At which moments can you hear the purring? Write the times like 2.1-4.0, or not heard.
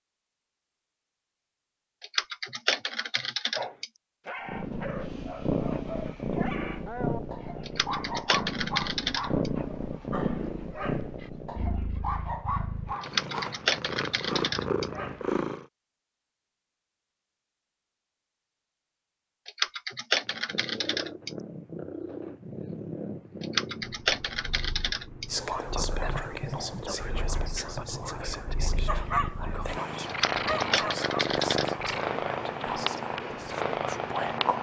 4.5-15.7, 20.2-34.5.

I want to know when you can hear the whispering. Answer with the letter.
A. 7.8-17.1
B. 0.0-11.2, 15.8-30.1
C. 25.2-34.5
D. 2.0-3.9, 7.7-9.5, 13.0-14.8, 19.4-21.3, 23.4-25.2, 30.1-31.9
C.